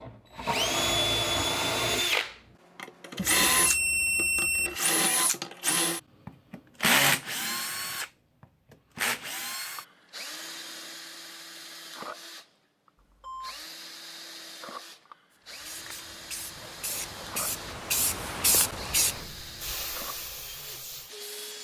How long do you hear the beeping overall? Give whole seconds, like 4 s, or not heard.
2 s.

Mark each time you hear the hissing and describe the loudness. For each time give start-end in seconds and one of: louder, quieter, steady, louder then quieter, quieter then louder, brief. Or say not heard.
15.3-21.5 louder then quieter.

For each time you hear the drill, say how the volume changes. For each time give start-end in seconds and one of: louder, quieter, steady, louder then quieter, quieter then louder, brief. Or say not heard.
0.0-21.5 quieter.